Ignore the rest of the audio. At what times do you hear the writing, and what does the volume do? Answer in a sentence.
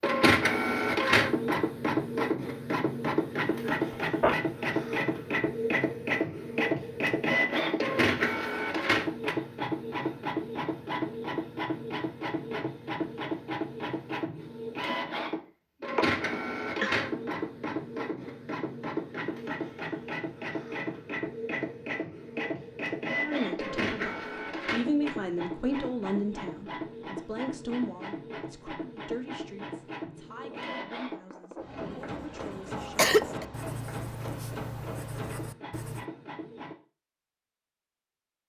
You can hear the writing from 30.4 to 36.0 s, getting louder.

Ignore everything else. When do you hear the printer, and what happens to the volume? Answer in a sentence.
The printer can be heard from 0.0 to 36.8 s, getting quieter.